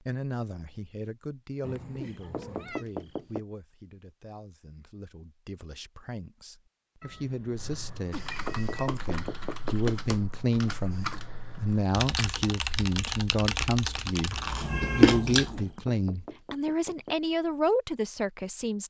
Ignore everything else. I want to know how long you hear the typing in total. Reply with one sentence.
You can hear the typing for 7 seconds altogether.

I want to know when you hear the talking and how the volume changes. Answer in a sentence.
You can hear the talking from 0.0 to 18.8 s, getting louder.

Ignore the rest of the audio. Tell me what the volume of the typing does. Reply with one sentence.
The volume of the typing goes up.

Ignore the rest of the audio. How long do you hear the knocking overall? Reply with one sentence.
The knocking can be heard for 5 seconds in total.